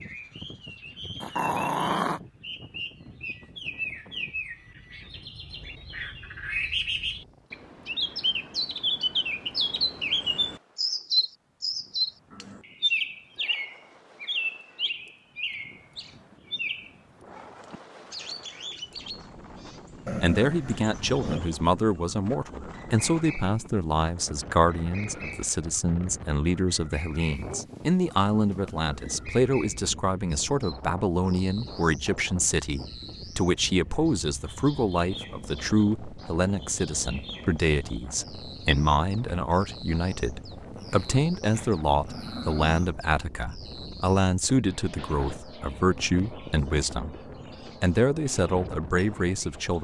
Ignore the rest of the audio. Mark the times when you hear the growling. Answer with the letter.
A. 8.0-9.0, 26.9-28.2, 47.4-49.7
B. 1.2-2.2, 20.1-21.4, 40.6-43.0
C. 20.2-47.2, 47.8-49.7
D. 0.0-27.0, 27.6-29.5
B.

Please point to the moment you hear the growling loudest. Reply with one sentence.
The loudest moment of the growling is at 2 seconds.